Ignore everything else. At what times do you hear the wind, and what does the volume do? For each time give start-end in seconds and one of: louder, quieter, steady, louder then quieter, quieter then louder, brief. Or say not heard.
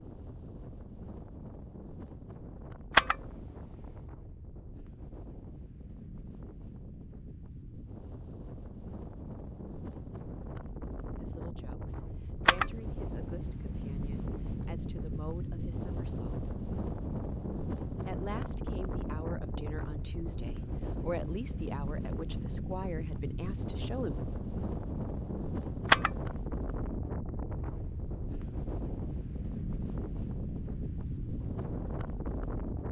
0.0-32.8 louder.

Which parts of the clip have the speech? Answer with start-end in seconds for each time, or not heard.
11.2-16.4, 18.1-24.1.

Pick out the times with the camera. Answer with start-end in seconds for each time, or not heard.
2.9-4.1, 12.4-14.6, 25.9-26.5.